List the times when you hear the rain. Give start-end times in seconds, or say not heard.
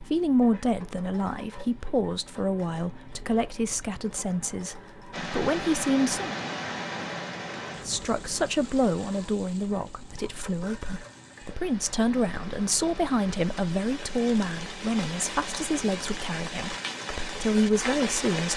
5.1-18.5.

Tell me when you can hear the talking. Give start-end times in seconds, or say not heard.
0.0-6.3, 7.8-18.5.